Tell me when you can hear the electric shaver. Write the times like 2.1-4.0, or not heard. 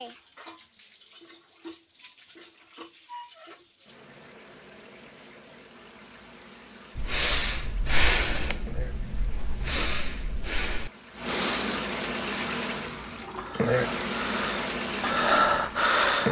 not heard.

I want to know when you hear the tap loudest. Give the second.
14 s.